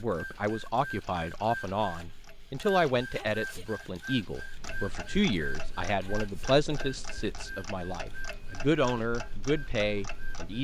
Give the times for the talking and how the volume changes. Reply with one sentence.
The talking can be heard from 0.0 to 10.6 s, at a steady volume.